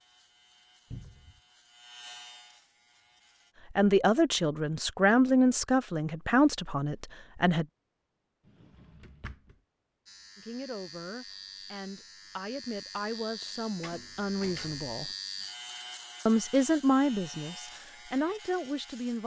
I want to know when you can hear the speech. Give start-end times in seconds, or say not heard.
3.7-7.7, 10.3-15.1, 16.2-19.2.